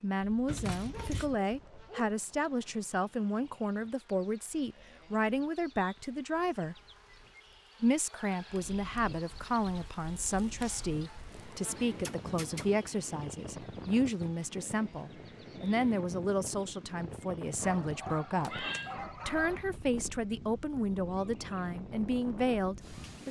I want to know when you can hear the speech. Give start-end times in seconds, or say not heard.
0.0-6.8, 7.8-18.6, 19.2-23.2.